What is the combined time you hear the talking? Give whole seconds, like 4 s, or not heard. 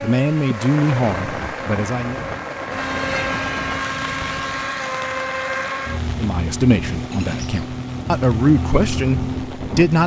6 s.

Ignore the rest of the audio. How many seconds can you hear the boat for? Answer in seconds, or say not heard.
10 s.